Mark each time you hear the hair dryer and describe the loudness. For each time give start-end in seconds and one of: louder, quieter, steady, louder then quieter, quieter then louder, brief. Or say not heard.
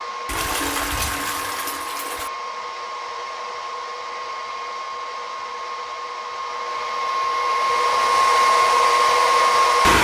0.0-9.9 louder.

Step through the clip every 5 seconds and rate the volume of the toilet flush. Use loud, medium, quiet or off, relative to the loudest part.
loud, off.